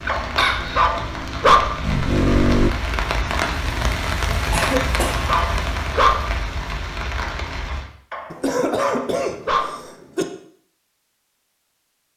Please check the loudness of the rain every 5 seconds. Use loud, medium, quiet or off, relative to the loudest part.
loud, loud, off.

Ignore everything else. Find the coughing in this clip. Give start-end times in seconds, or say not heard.
0.1-0.9, 4.5-5.3, 8.3-10.2.